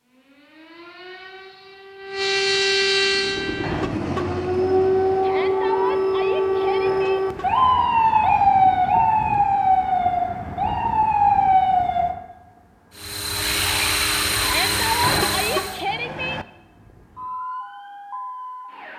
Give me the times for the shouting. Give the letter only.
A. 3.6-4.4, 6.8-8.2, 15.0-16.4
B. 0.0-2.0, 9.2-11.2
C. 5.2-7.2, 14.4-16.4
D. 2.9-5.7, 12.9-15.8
C.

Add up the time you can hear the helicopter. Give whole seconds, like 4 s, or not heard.
6 s.